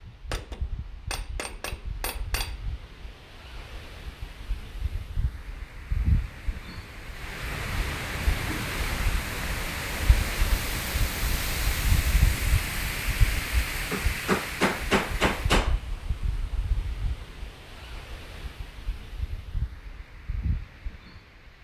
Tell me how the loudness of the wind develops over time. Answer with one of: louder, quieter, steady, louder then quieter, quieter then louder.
louder then quieter.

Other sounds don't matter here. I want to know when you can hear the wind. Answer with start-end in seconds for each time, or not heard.
0.0-21.5.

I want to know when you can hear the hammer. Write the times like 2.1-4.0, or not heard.
0.3-2.6, 13.9-15.8.